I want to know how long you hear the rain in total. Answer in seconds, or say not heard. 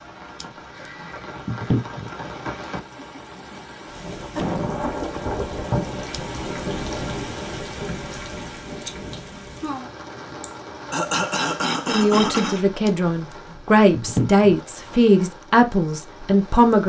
17 s.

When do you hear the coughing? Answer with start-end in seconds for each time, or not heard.
4.3-5.2, 10.4-12.7.